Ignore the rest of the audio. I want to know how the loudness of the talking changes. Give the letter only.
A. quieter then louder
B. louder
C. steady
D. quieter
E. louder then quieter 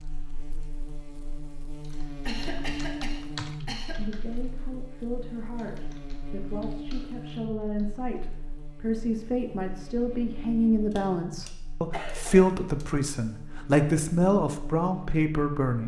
B.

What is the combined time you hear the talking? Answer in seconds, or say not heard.
12 s.